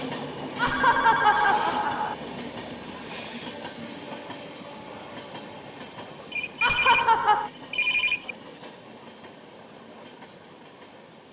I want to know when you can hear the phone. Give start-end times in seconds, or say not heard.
0.7-1.6, 6.3-8.3.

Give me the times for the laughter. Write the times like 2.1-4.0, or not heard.
0.6-2.1, 6.6-7.5.